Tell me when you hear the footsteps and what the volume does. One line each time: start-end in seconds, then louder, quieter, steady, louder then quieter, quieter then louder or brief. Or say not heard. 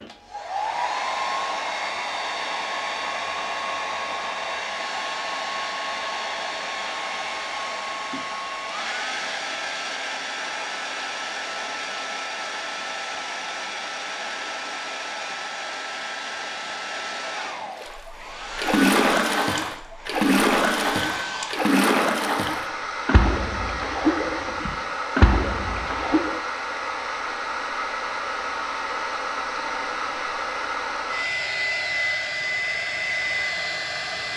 not heard.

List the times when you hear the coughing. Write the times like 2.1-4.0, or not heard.
not heard.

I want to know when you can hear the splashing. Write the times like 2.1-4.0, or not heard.
17.8-26.4.